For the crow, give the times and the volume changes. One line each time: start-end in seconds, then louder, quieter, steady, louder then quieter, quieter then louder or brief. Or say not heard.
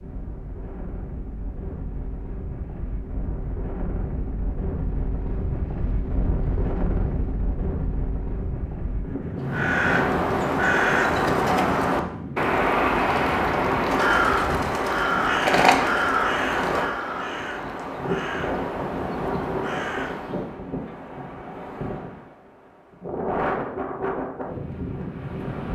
9.4-20.6 quieter.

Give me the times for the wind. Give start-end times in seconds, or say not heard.
0.0-25.7.